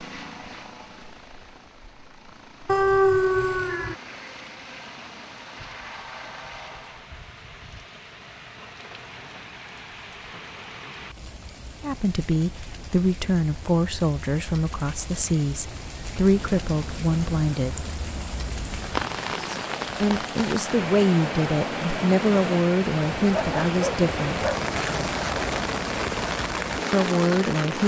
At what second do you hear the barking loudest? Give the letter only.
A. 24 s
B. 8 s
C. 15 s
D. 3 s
D.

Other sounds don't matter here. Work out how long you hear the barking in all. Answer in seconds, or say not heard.
3 s.